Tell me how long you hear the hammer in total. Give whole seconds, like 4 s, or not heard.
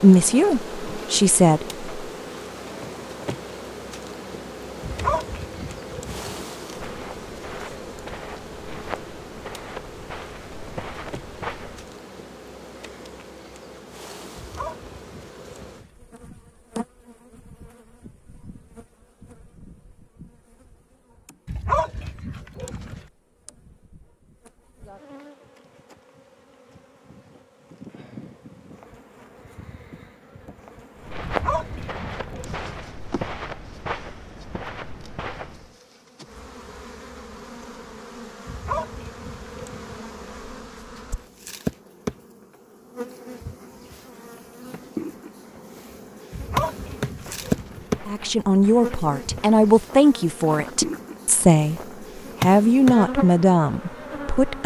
not heard.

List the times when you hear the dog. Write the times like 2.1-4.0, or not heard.
4.8-6.4, 14.3-15.9, 21.4-23.1, 31.2-32.8, 38.5-40.0, 46.3-47.9.